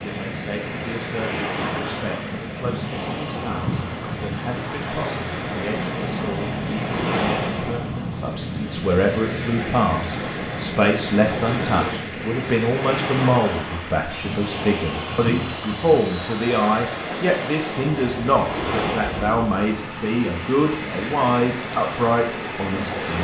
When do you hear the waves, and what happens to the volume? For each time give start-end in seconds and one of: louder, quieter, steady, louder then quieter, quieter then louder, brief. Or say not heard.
0.0-23.1 steady.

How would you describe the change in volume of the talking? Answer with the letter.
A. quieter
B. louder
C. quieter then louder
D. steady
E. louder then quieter
B.